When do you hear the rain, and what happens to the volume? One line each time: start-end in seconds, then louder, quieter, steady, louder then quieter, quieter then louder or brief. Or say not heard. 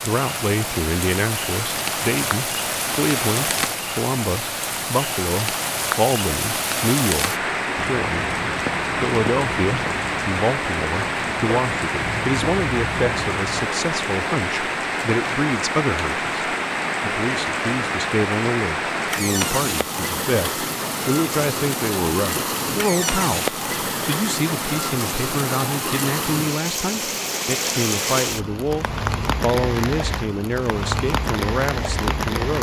0.0-32.5 steady.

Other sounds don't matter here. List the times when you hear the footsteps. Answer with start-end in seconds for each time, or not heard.
7.8-13.7.